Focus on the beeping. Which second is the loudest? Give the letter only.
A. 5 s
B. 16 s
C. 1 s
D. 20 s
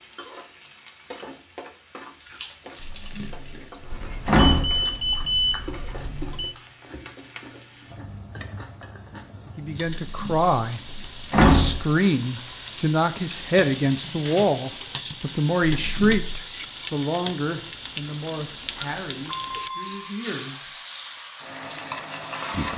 A.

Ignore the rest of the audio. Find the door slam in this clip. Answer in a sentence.
You can hear the door slam from 2.8 to 4.8 s, from 10.0 to 11.8 s and from 15.7 to 16.4 s.